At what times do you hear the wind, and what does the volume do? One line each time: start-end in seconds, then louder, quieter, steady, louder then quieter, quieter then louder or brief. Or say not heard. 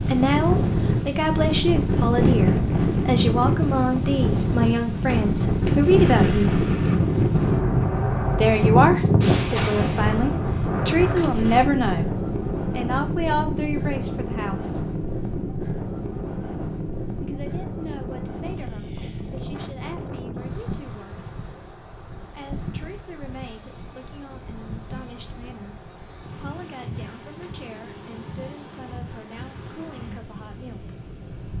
0.0-31.5 quieter.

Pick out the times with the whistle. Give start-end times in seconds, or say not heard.
not heard.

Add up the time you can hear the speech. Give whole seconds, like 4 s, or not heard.
25 s.